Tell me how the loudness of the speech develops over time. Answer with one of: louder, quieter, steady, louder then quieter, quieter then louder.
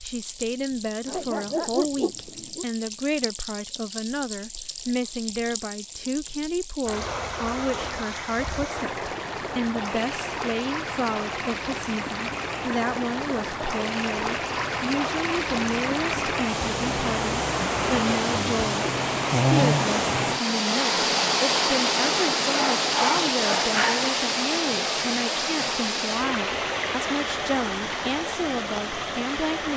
steady.